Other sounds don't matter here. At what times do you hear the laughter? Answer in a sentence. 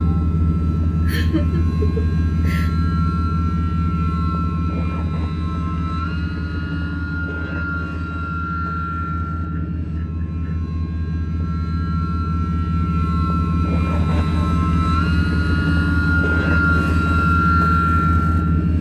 You can hear the laughter from 1.0 to 2.7 s, from 9.5 to 10.6 s and from 13.9 to 14.6 s.